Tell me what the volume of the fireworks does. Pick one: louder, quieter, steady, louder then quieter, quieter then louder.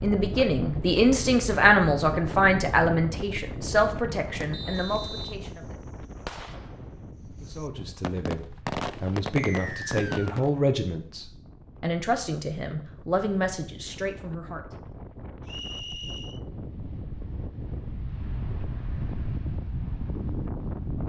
louder.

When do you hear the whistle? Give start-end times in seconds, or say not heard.
4.5-5.3, 9.3-10.4, 15.4-16.4.